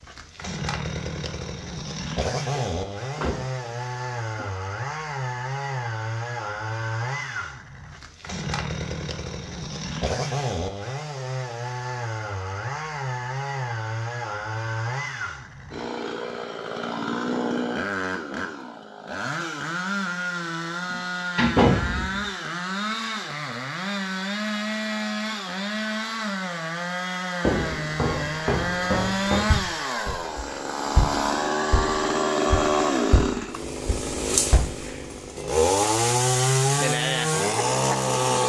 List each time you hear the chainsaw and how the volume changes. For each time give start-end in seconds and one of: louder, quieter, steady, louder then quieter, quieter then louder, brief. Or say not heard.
0.0-38.4 louder.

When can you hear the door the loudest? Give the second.
22 s.